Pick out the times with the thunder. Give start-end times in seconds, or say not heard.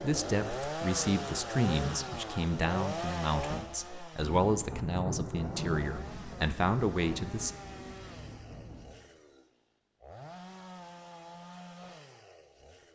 4.2-8.9.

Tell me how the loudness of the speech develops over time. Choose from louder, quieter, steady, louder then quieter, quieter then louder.
steady.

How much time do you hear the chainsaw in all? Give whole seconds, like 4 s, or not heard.
13 s.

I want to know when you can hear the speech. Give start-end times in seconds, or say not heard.
0.0-7.5.